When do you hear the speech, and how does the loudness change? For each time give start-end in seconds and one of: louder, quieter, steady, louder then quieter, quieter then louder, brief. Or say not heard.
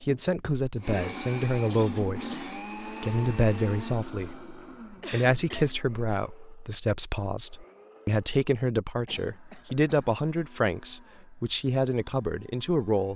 0.0-13.1 steady.